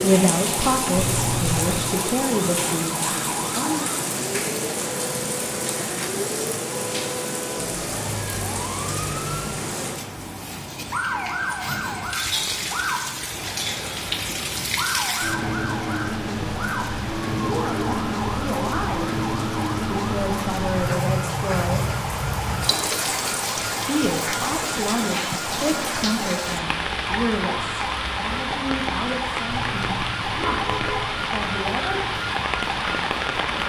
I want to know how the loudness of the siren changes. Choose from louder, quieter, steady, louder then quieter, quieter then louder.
steady.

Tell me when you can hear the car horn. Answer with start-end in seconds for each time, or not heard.
0.9-1.8, 29.4-31.2.